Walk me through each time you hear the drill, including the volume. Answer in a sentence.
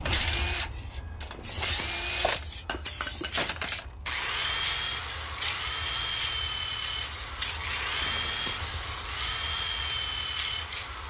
You can hear the drill from 0.0 to 11.0 s, at a steady volume.